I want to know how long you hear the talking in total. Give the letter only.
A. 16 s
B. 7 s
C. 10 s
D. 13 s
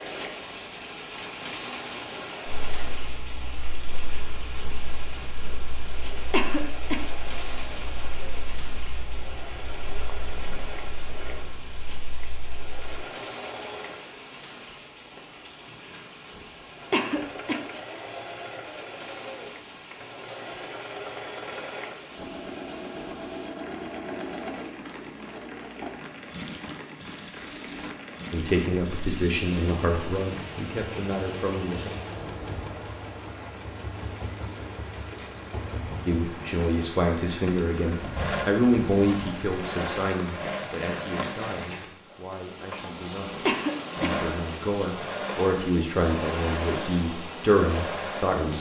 A.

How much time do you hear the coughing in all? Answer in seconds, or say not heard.
2 s.